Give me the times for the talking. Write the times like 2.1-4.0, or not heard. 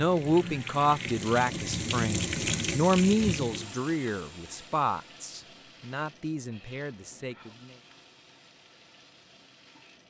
0.0-7.8.